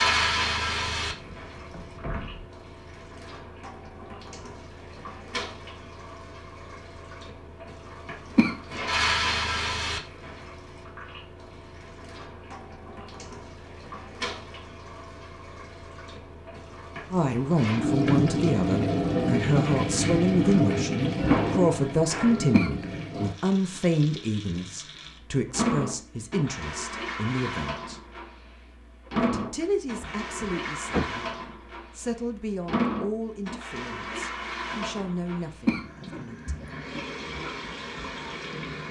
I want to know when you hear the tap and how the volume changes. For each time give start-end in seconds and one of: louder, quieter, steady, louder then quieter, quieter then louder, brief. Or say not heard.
0.0-38.8 louder then quieter.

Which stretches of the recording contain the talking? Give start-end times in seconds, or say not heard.
17.1-28.0, 29.1-31.4, 31.9-36.6.